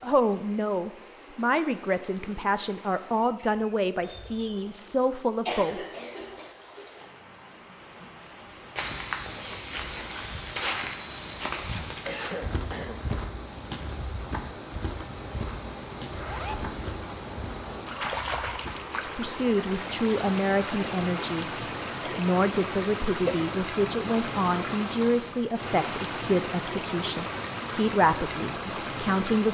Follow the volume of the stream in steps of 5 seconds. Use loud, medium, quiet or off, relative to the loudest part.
quiet, quiet, medium, loud, loud, loud.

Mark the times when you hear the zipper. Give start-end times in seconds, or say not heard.
11.6-12.0, 16.1-16.7.